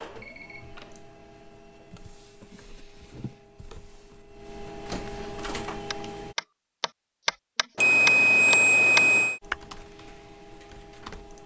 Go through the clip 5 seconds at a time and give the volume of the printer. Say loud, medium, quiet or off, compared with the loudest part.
medium, loud, medium.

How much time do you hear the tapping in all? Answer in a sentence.
The tapping can be heard for 4 seconds in total.